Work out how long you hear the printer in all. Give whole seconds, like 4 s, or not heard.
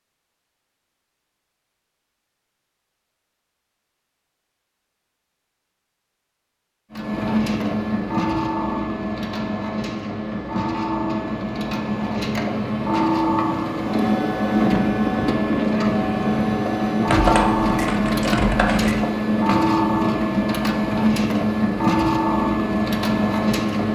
17 s.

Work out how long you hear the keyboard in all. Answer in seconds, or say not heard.
2 s.